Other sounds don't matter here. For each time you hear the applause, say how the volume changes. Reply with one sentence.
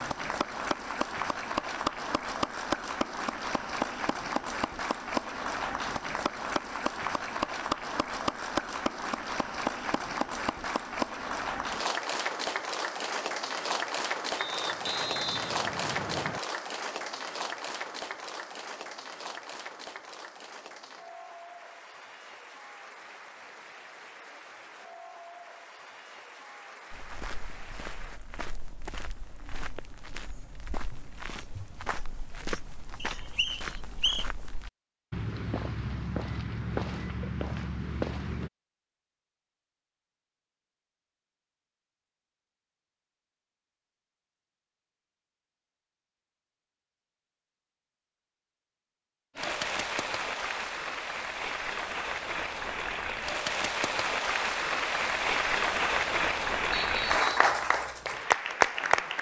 The applause can be heard from 0.0 to 28.2 s, getting quieter; and from 49.4 to 59.1 s, getting louder.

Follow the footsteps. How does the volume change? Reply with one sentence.
The volume of the footsteps goes up.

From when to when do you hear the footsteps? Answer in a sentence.
The footsteps can be heard from 26.9 to 38.5 s.